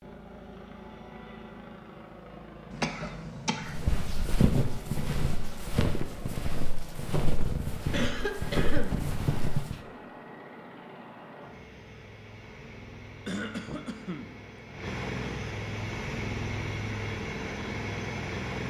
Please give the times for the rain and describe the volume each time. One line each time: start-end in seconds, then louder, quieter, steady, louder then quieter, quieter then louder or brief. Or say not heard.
not heard.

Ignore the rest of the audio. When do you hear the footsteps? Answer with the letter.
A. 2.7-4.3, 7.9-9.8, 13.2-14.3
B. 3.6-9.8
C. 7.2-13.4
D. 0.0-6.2
B.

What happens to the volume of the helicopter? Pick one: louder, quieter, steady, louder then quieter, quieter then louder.
louder.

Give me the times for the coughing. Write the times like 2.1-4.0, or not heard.
2.7-4.3, 7.9-9.8, 13.2-14.3.